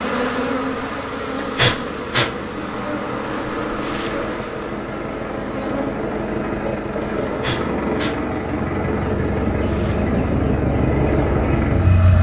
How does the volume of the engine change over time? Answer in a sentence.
The loudness of the engine goes up.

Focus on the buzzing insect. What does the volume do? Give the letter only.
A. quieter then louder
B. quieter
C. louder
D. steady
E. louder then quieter
B.